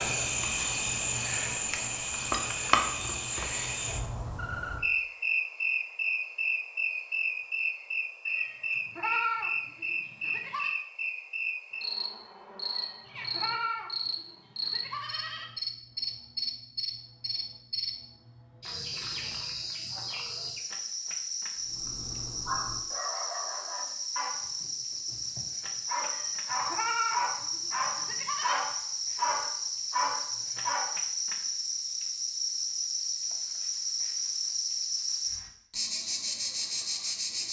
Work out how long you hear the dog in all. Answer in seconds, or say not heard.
9 s.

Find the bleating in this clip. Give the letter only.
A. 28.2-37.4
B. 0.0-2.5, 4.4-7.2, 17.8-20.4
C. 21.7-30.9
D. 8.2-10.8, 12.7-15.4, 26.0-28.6
D.